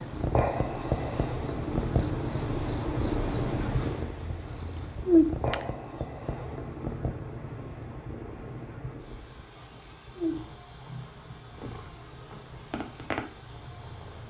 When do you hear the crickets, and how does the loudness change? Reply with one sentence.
You can hear the crickets from 0.0 to 14.2 s, getting quieter.